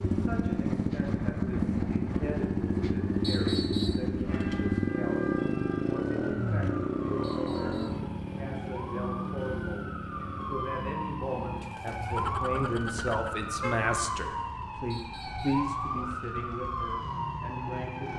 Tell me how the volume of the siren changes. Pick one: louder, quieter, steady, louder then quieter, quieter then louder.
louder.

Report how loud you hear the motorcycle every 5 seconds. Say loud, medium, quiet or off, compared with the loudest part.
loud, loud, quiet, quiet.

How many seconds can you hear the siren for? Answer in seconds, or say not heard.
14 s.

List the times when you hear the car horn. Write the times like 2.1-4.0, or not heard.
12.1-13.8.